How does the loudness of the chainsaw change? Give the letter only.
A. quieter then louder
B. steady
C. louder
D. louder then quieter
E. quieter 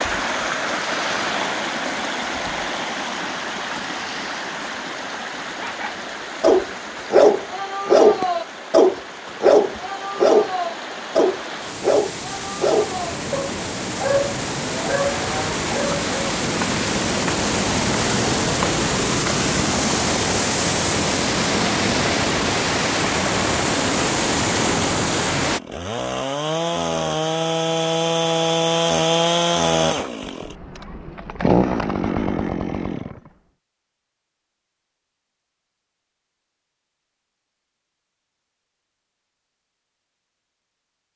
C.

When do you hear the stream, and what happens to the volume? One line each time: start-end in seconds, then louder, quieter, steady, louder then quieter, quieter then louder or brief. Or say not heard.
0.0-25.6 quieter then louder.